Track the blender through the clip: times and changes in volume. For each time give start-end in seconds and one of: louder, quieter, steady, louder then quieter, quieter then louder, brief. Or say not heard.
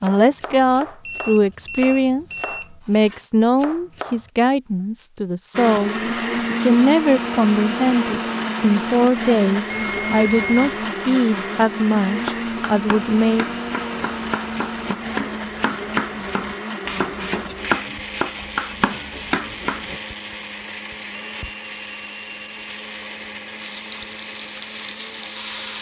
5.5-25.7 quieter.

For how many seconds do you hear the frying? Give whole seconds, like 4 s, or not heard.
2 s.